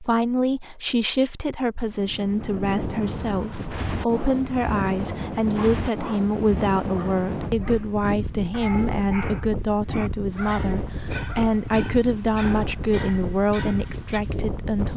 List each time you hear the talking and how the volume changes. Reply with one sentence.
You can hear the talking from 0.0 to 14.9 s, at a steady volume.